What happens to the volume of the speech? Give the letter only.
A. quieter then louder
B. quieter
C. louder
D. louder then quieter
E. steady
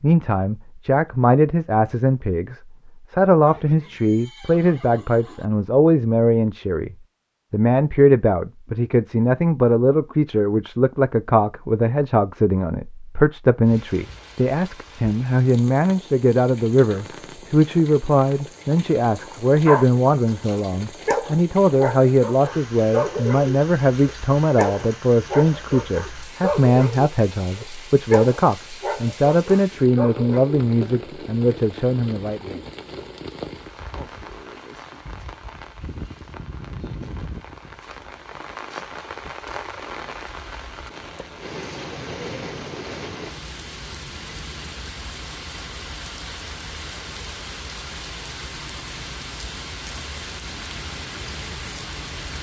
E.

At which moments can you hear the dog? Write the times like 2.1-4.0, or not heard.
19.2-30.6.